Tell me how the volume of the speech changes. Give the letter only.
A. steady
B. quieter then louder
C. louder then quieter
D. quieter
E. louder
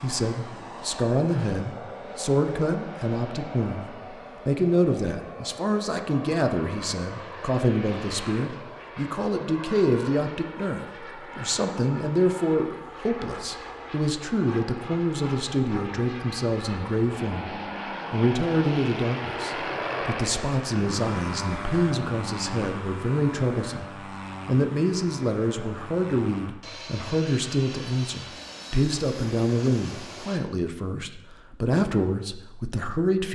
A.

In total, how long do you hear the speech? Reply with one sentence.
You can hear the speech for 33 seconds altogether.